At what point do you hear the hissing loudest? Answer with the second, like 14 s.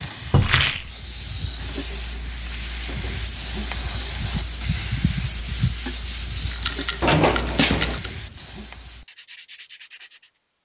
5 s.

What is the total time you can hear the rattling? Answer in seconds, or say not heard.
2 s.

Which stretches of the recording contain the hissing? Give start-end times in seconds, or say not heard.
0.0-9.1.